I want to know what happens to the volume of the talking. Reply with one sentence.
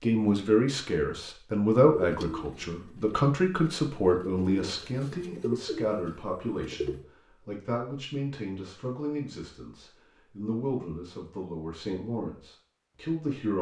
The loudness of the talking goes down.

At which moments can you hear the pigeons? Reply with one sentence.
You can hear the pigeons from 1.9 to 7.0 s.